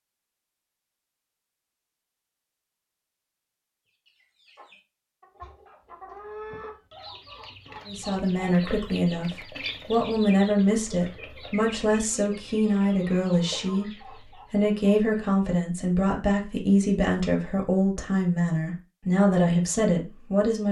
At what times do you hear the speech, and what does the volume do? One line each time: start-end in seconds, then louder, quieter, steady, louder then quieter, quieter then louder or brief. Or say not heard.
7.8-20.6 steady.